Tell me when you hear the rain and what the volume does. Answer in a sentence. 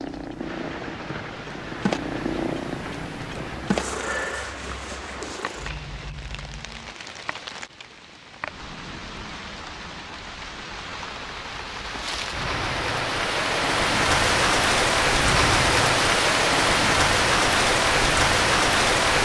You can hear the rain from 0.0 to 19.2 s, getting louder.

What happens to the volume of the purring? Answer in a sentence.
The volume of the purring goes up, then down.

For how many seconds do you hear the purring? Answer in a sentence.
The purring can be heard for 7 seconds in total.